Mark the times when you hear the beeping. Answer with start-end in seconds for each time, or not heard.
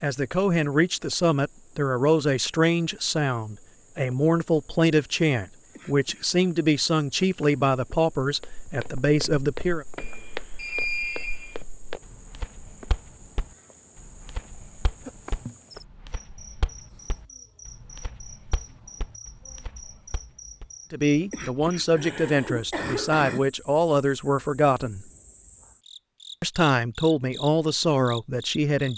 9.9-11.6.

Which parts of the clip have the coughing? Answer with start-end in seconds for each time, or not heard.
5.8-6.3, 21.3-23.4.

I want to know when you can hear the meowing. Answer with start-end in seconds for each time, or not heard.
not heard.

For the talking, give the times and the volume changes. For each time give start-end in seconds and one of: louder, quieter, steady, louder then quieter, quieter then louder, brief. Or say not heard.
0.0-9.8 steady
20.9-25.1 steady
26.4-28.9 brief.